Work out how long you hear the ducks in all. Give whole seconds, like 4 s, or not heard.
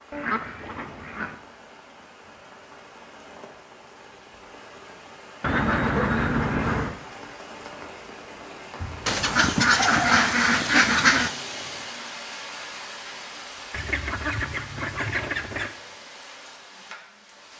7 s.